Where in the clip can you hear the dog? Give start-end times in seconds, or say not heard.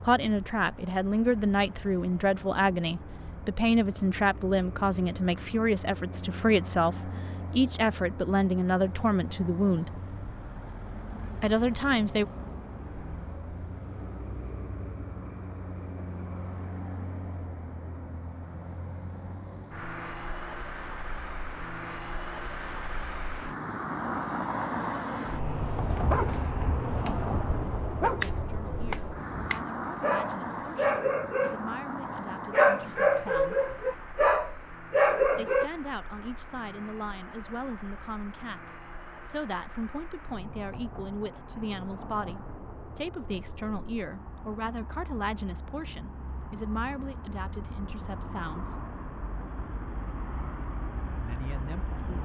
25.9-35.7.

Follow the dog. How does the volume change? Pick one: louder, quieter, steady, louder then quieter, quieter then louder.
louder.